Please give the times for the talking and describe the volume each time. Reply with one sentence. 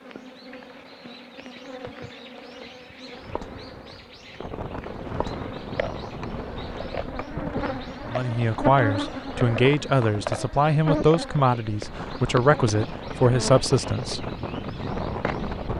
You can hear the talking from 8.1 to 14.2 s, at a steady volume.